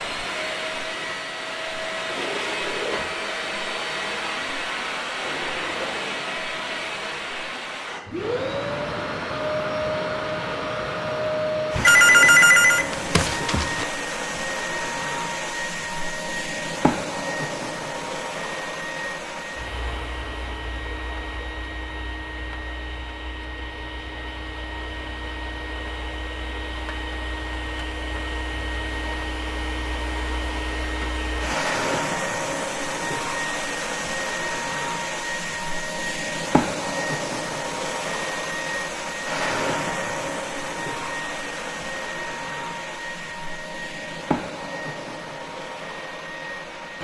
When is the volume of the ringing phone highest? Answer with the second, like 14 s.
12 s.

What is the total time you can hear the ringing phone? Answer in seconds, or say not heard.
2 s.